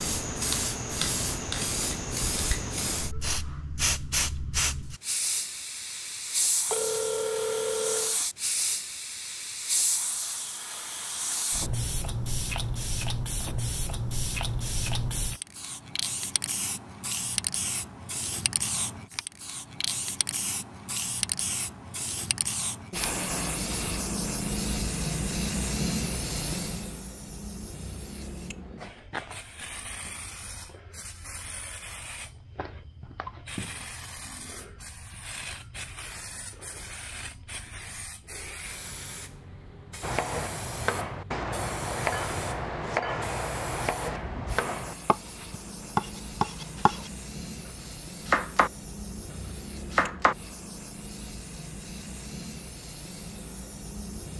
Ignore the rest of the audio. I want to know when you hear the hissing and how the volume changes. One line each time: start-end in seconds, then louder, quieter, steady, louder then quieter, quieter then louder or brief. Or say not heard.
0.0-54.3 quieter.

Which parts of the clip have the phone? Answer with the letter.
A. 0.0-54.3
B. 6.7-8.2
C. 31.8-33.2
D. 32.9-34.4
B.